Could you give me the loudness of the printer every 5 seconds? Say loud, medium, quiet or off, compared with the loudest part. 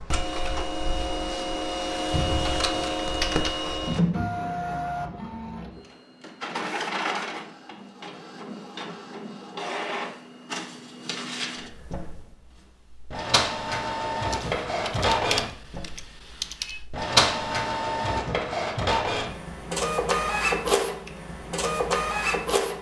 loud, medium, medium, loud, loud.